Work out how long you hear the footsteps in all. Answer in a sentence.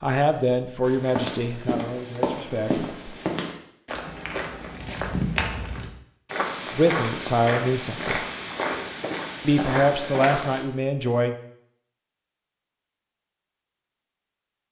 You can hear the footsteps for 10 seconds altogether.